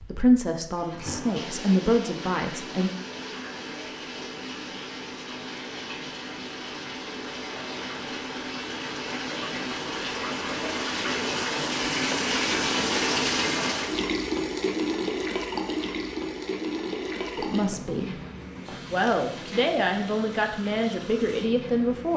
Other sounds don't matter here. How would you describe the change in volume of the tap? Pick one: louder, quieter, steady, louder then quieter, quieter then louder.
louder then quieter.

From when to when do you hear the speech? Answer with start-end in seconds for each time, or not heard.
0.1-2.9, 17.4-18.1, 18.9-22.1.